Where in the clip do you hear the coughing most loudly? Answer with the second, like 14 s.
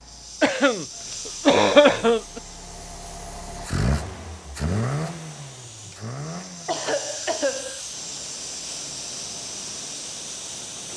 2 s.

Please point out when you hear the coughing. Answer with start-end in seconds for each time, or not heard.
0.4-0.8, 1.4-2.4, 6.7-7.8.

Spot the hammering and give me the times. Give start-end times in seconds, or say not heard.
not heard.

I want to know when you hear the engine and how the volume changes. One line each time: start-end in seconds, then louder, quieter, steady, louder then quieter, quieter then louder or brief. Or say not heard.
0.0-10.9 louder then quieter.